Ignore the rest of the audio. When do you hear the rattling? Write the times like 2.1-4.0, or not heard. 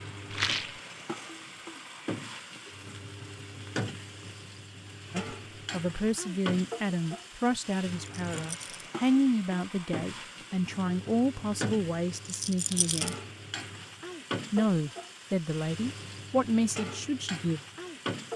0.3-0.8, 8.0-8.8, 12.2-13.2.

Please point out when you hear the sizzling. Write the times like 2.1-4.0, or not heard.
0.0-18.3.